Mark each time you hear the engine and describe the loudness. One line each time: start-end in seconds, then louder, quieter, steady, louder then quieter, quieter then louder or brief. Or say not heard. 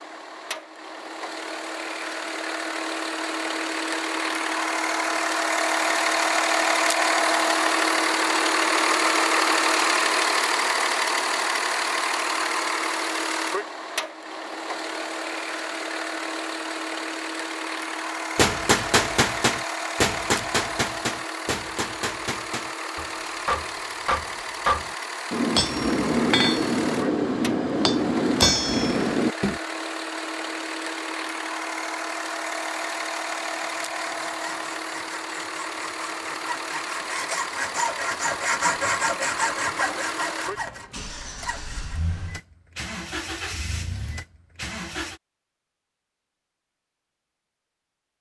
0.0-45.2 quieter.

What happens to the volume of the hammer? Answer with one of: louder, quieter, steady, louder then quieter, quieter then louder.
quieter then louder.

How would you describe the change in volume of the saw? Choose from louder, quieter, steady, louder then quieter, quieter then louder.
louder then quieter.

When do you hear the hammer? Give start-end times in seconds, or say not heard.
18.4-29.6.